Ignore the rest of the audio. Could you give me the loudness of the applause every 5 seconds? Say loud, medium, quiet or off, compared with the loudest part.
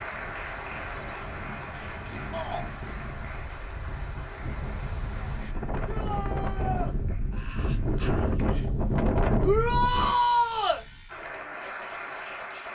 loud, quiet, loud.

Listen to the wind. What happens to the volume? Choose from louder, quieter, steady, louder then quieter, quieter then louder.
louder.